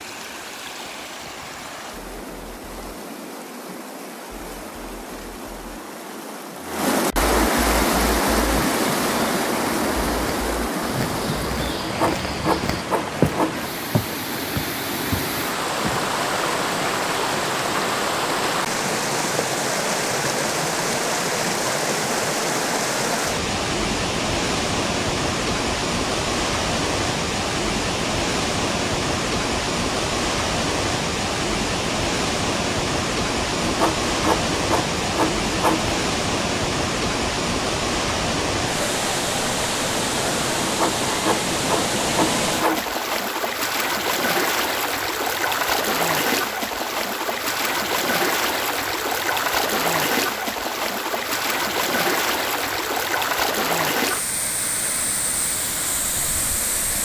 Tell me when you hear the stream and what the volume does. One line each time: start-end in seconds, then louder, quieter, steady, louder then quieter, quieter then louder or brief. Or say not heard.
0.0-57.0 steady.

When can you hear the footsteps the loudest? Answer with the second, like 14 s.
13 s.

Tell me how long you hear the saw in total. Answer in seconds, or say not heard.
7 s.